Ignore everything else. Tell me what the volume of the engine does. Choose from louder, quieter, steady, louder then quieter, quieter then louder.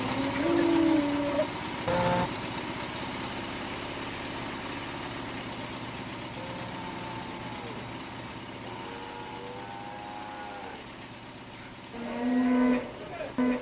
quieter.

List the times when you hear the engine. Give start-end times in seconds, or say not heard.
0.0-13.5.